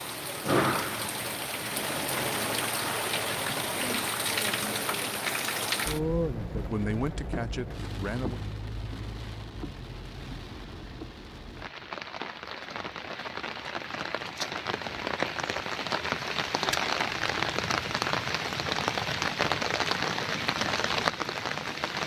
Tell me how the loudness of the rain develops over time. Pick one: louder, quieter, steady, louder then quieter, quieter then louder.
quieter then louder.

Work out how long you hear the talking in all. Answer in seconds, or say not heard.
2 s.